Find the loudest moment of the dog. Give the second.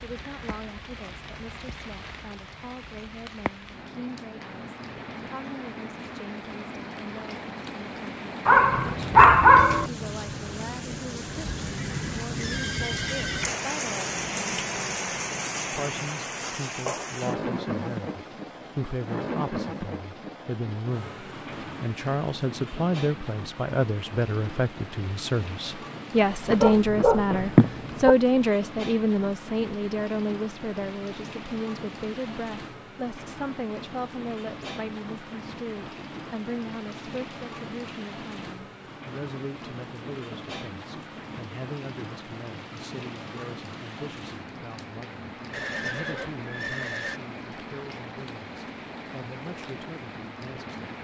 9 s.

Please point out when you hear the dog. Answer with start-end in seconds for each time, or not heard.
8.4-9.9, 26.5-28.1.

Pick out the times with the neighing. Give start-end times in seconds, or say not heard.
11.6-13.4, 45.5-47.2.